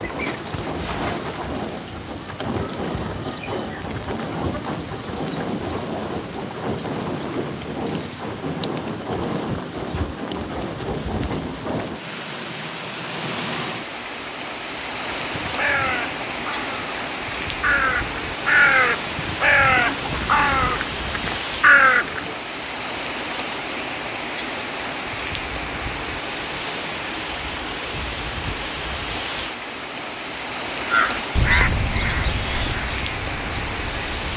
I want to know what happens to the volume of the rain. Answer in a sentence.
The volume of the rain stays about the same.